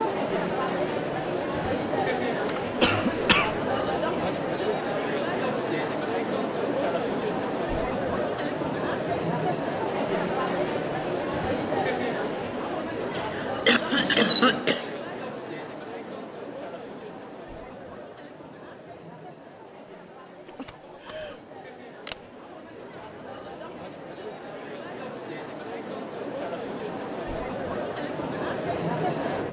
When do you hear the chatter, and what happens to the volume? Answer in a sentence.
The chatter can be heard from 0.0 to 29.4 s, getting quieter then louder.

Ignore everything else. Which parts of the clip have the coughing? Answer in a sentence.
The coughing can be heard from 2.8 to 3.6 s, from 13.1 to 15.3 s and from 20.4 to 21.4 s.